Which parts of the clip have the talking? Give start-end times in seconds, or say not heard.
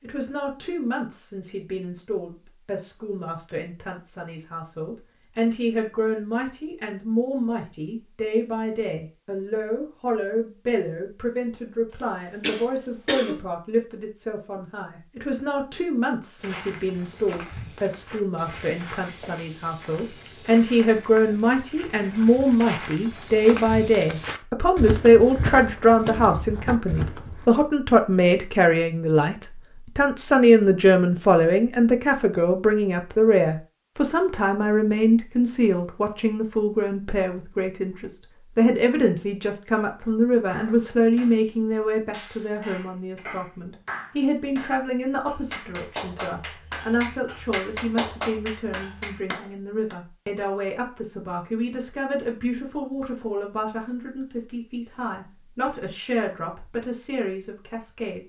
0.0-58.2.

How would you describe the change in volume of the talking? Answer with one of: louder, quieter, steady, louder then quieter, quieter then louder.
louder then quieter.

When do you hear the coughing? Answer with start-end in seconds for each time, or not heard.
11.9-13.4.